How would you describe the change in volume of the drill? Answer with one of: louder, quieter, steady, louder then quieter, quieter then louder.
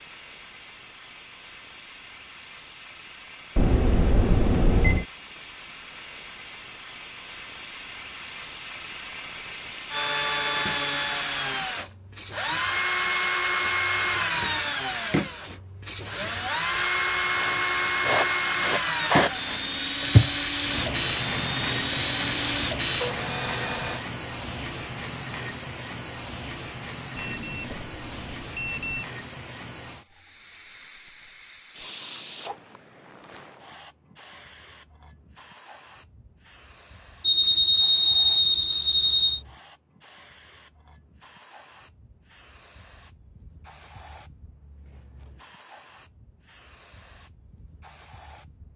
steady.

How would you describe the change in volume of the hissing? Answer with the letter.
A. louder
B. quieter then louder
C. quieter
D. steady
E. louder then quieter
E.